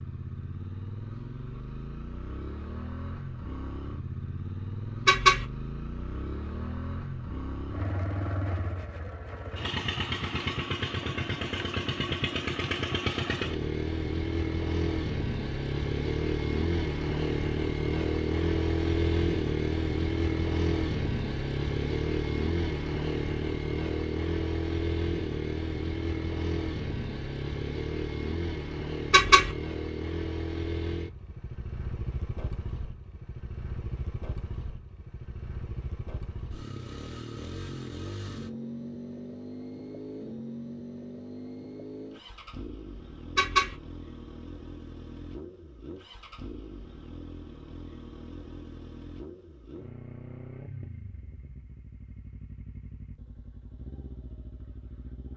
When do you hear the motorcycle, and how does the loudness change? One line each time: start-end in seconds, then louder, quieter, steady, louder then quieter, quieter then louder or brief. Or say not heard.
0.0-55.3 louder then quieter.